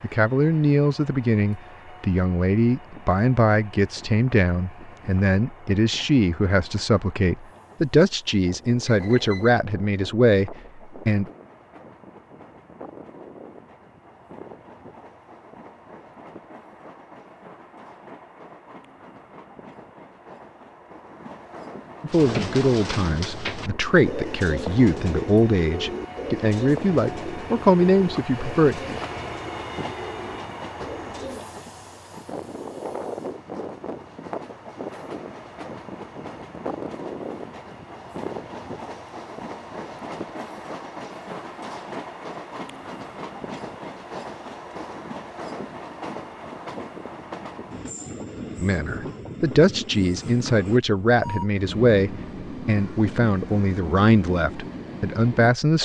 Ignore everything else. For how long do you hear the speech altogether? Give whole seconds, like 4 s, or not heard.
25 s.